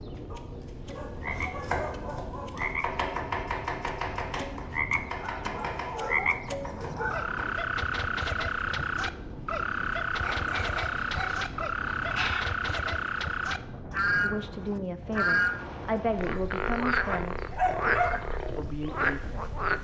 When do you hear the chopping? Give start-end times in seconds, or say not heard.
1.1-7.7.